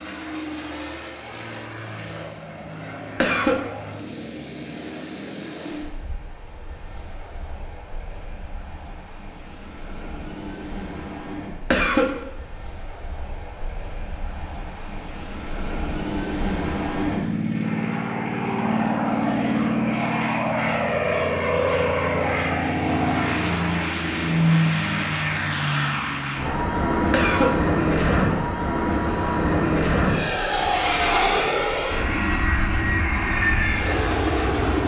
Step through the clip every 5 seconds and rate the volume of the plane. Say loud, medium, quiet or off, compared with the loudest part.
quiet, quiet, quiet, loud, loud, loud, loud.